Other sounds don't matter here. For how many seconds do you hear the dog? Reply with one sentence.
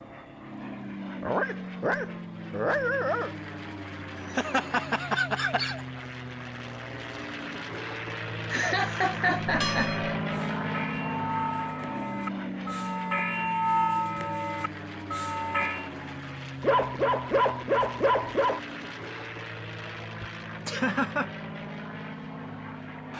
You can hear the dog for 4 seconds altogether.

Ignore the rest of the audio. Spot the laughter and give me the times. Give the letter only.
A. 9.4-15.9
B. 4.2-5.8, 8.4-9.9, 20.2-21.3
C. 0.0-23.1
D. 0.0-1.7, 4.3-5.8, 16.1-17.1
B.